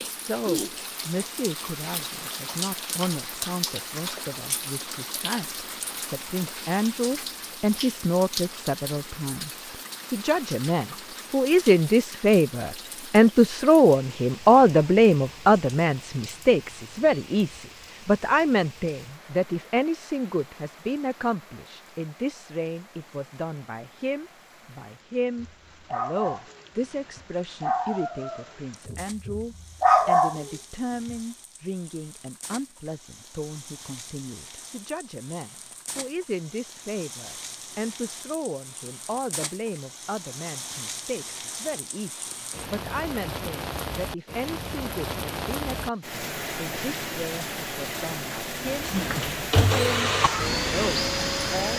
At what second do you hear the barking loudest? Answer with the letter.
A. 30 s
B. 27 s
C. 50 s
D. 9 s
A.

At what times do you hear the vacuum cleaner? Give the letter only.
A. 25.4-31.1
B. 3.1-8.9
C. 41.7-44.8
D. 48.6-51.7
D.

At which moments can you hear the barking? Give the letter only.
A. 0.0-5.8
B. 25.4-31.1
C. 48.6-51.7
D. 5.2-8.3
B.